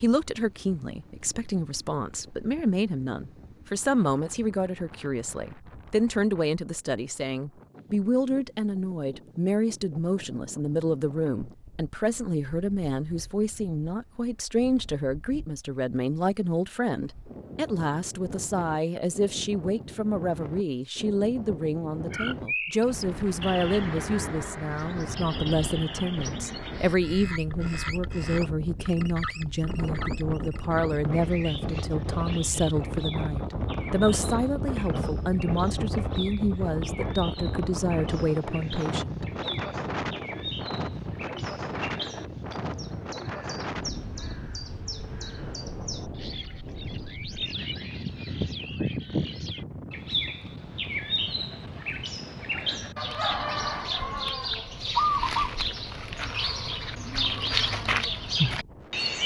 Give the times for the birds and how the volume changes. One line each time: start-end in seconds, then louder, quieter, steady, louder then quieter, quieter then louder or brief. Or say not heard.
22.1-59.2 quieter then louder.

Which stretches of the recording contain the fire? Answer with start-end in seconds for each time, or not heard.
not heard.